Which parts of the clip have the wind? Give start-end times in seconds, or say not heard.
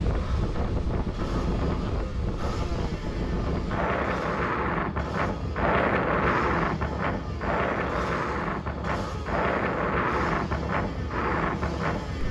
0.0-12.2.